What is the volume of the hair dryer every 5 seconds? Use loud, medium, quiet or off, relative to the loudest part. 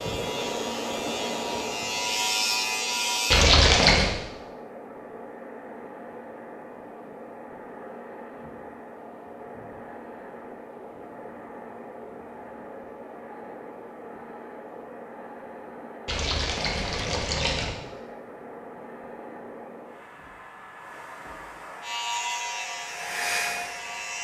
loud, medium, medium, medium, loud.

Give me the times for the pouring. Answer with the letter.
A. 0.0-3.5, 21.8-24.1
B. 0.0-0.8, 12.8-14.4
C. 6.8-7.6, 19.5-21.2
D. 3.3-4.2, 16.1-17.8
D.